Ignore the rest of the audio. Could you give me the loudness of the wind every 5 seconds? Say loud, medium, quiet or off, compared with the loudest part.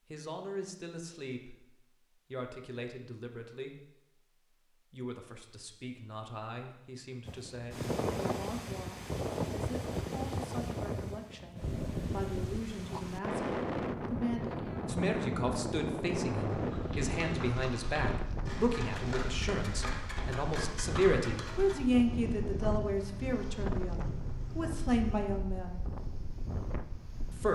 off, loud, loud, loud, medium, medium.